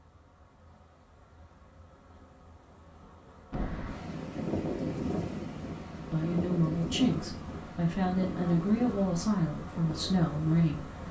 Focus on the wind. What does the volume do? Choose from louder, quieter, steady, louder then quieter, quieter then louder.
quieter.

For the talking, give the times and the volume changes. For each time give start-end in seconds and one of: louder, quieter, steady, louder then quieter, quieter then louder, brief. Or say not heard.
6.1-10.9 steady.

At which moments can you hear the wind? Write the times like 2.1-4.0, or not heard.
3.5-11.0.